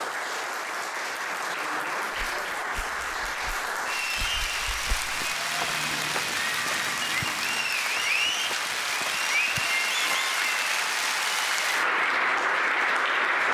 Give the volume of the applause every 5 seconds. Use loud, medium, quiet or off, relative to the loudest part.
medium, loud, loud.